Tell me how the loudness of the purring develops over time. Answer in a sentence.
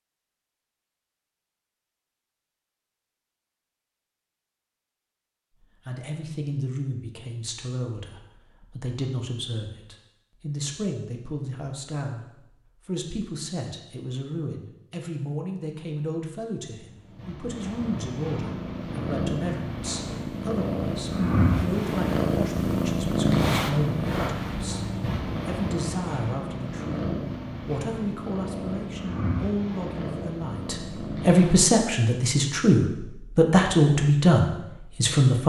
The volume of the purring goes up, then down.